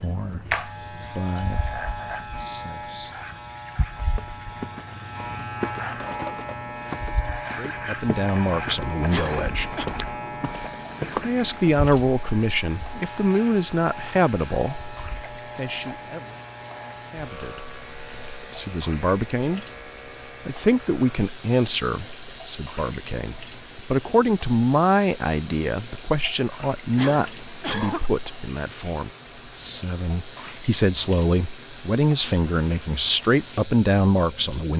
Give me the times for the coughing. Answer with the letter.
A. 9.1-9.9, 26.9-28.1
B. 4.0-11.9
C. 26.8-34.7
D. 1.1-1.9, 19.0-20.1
A.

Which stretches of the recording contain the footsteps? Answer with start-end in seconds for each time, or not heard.
4.0-11.9.